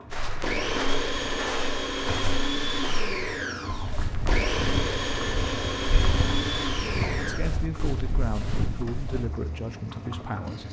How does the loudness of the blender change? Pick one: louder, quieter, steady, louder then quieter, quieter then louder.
steady.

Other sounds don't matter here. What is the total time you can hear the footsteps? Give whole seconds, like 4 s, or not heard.
9 s.